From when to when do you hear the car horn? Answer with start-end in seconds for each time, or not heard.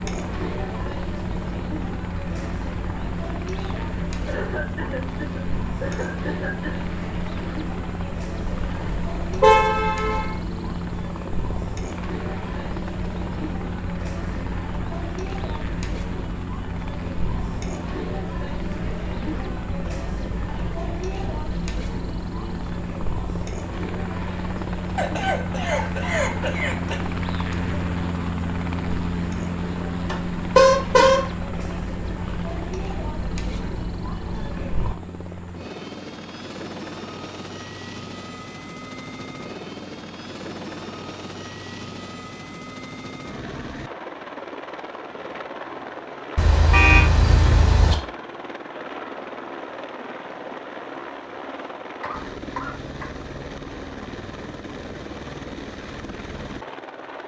8.6-10.4, 30.1-31.2, 46.4-48.0.